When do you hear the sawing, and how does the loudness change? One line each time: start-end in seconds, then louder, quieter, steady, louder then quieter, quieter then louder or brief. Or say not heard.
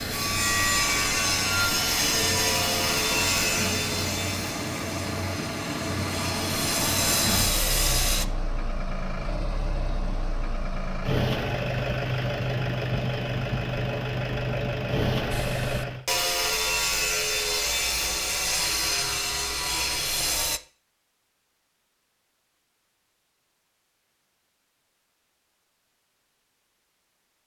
0.0-8.2 quieter then louder
15.3-20.6 steady.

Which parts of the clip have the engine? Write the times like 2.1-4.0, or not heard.
0.0-16.1.